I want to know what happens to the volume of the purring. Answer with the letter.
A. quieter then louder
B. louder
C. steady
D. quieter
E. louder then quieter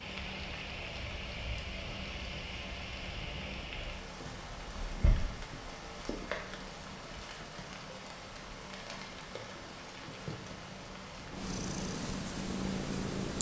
B.